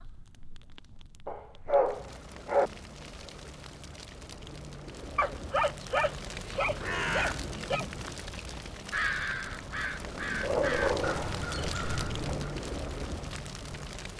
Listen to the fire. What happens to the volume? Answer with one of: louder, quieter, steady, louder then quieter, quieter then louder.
louder.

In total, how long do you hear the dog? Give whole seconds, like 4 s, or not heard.
6 s.